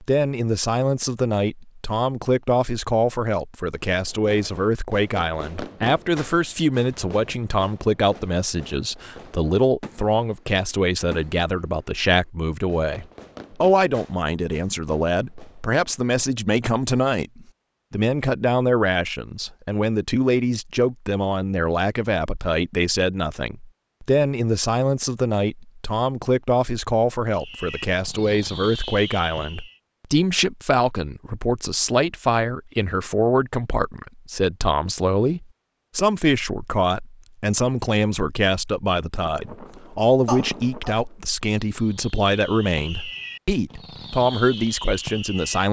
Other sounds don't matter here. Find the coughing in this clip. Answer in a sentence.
You can hear the coughing from 40.2 to 41.0 s.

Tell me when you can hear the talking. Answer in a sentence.
You can hear the talking from 0.0 to 45.6 s.